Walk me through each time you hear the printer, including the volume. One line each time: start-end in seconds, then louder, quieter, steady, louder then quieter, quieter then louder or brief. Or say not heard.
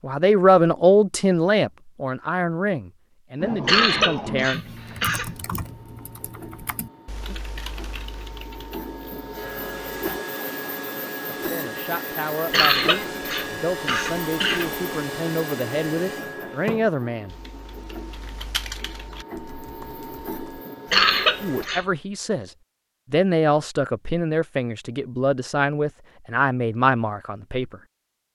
4.6-21.7 louder then quieter.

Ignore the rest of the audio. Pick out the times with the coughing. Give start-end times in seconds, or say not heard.
3.6-5.3, 12.5-14.7, 20.9-21.9.